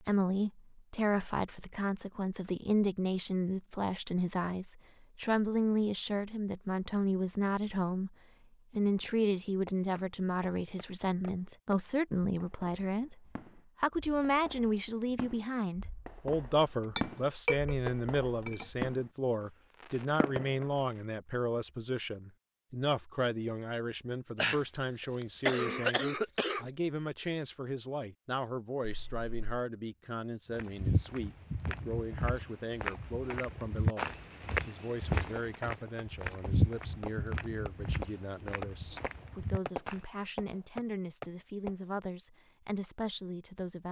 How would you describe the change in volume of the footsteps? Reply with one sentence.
The volume of the footsteps goes down.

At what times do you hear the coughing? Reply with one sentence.
You can hear the coughing from 24.4 to 26.7 s.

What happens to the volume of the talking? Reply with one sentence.
The volume of the talking goes down.